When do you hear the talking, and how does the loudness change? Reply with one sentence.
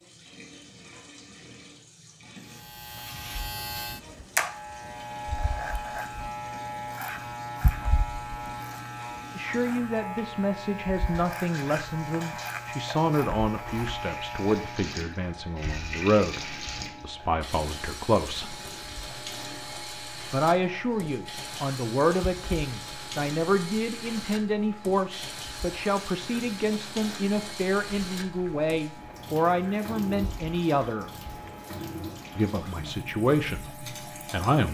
The talking can be heard from 9.3 to 18.6 s, at a steady volume; from 20.3 to 31.1 s, at a steady volume; and briefly from 32.4 to 34.7 s.